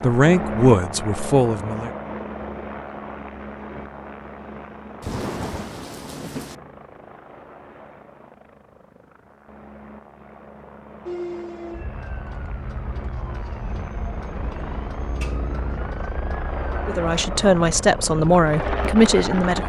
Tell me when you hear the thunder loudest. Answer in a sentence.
The volume of the thunder peaks at 5 seconds.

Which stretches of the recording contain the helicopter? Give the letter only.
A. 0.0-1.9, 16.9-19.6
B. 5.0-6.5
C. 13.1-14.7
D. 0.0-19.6
D.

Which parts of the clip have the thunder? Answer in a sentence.
You can hear the thunder from 5.0 to 6.5 s.